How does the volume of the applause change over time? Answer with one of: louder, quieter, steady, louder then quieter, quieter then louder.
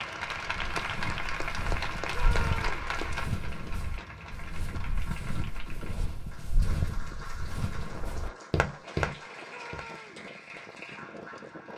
quieter.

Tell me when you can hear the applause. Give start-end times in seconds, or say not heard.
0.0-11.7.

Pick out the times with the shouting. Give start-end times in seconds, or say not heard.
2.1-2.9, 9.4-10.2.